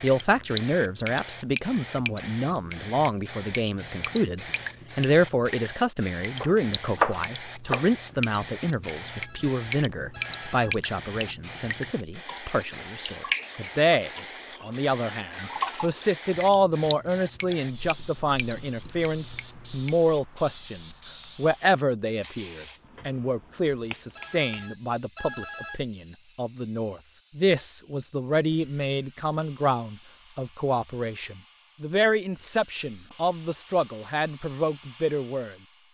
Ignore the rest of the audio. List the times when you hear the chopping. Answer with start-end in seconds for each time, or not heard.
6.4-7.9.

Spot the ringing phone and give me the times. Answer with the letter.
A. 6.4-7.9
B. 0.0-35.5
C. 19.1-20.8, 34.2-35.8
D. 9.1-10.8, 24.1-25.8
D.